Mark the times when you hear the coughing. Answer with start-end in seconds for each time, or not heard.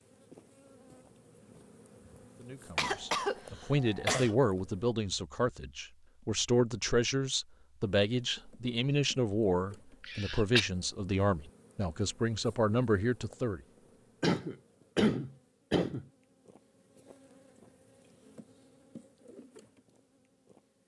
2.8-4.3, 10.0-10.7, 14.2-16.1.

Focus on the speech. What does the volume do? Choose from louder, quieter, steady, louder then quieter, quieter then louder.
steady.